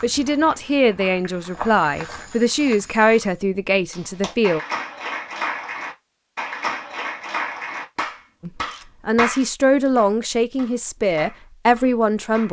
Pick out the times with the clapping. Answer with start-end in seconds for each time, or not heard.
3.9-12.4.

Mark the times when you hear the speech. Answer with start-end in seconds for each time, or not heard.
0.0-4.6, 8.4-12.4.